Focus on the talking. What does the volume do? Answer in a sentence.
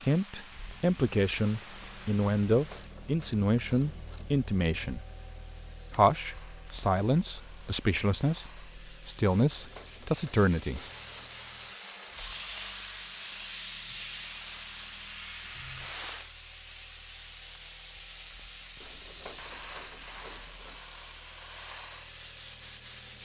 The volume of the talking stays about the same.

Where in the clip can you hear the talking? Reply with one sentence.
The talking can be heard from 0.0 to 5.0 s and from 6.0 to 10.8 s.